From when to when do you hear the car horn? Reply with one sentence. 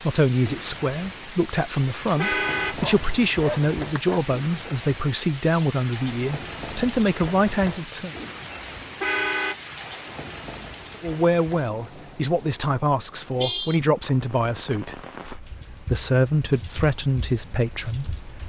The car horn can be heard from 1.7 to 2.8 s, from 8.5 to 9.6 s and from 13.3 to 13.8 s.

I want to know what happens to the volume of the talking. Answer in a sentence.
The loudness of the talking stays about the same.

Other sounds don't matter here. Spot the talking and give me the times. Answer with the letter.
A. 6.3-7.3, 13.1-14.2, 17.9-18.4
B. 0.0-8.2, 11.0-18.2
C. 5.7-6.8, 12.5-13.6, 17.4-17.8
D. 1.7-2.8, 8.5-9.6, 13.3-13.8
B.